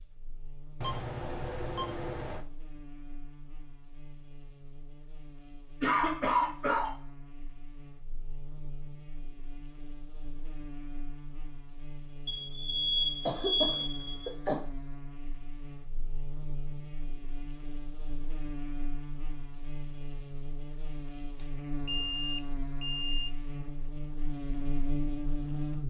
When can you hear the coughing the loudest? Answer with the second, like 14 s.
6 s.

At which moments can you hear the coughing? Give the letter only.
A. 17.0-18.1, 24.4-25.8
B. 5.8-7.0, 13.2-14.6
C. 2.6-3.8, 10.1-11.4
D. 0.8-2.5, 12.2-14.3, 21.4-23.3
B.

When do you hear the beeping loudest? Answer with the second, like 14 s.
13 s.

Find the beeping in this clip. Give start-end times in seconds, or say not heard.
0.8-2.5, 12.2-14.3, 21.4-23.3.